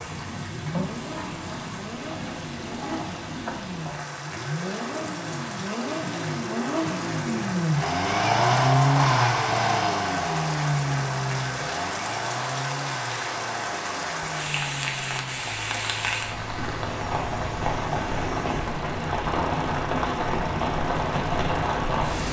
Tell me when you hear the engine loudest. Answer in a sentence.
The volume of the engine peaks at 9 seconds.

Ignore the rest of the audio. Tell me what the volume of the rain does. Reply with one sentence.
The loudness of the rain goes up.